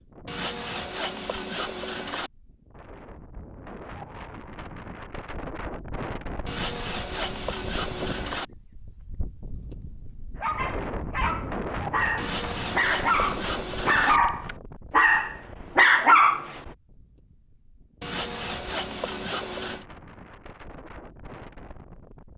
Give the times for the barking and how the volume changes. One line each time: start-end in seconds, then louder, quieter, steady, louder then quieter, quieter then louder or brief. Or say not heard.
10.3-16.6 louder.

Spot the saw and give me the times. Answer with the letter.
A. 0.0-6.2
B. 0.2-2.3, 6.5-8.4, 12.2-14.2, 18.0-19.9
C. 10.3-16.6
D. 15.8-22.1
B.